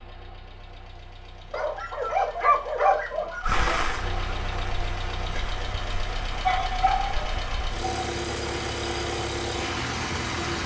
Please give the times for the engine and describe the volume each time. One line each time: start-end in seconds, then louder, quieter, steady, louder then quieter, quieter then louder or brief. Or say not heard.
0.0-10.6 louder.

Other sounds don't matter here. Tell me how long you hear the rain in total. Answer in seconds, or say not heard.
7 s.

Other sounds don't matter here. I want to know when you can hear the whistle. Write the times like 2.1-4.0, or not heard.
not heard.